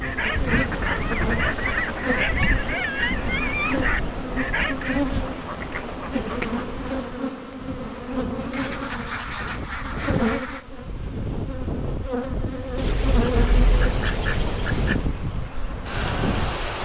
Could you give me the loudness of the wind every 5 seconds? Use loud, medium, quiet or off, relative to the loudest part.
loud, medium, loud, loud.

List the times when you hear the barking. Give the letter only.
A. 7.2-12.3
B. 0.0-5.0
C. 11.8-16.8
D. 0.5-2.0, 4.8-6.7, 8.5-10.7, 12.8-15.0
B.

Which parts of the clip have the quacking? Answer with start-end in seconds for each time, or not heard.
0.5-2.0, 4.8-6.7, 8.5-10.7, 12.8-15.0.